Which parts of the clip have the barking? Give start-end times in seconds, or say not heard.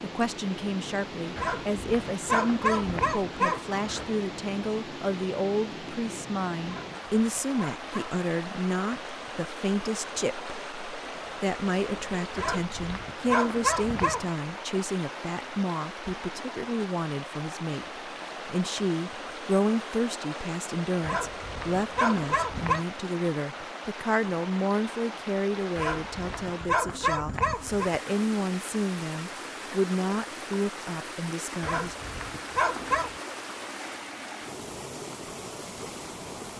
1.4-4.1, 6.7-8.2, 12.3-14.3, 21.0-22.9, 25.8-27.9, 31.6-33.1.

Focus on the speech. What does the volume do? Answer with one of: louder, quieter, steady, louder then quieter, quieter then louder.
steady.